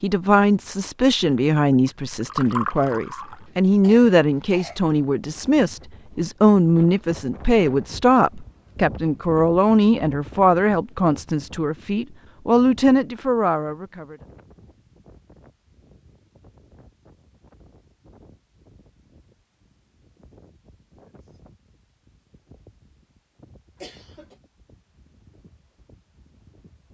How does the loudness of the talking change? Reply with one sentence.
The volume of the talking stays about the same.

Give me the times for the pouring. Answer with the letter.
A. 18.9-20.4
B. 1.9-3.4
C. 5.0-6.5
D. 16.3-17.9
B.